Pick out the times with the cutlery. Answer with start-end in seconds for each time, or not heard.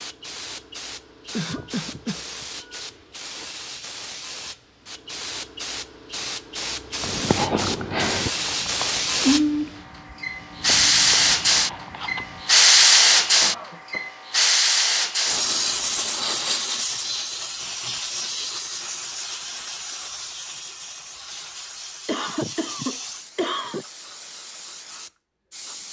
not heard.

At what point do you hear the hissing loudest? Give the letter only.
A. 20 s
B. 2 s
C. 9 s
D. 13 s
D.